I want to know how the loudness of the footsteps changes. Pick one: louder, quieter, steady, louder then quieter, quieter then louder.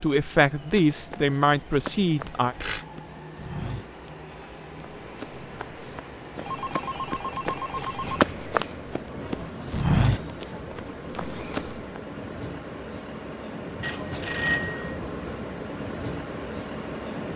louder.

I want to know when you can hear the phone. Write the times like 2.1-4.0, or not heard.
2.4-2.9, 6.5-8.2, 13.8-15.0.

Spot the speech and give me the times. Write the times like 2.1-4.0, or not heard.
0.0-2.5.